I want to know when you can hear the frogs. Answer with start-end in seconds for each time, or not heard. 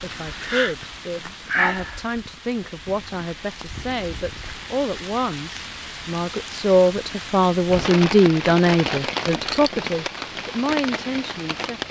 not heard.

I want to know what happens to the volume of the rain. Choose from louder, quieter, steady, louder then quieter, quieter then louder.
quieter then louder.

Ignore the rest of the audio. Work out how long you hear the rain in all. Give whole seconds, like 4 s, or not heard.
12 s.